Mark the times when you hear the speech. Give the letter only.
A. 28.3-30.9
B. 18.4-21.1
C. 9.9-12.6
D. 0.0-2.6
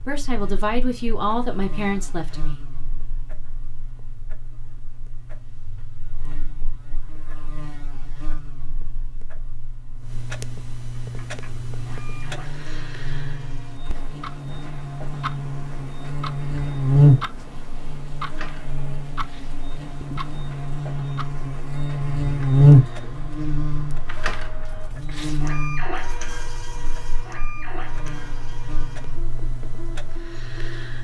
D.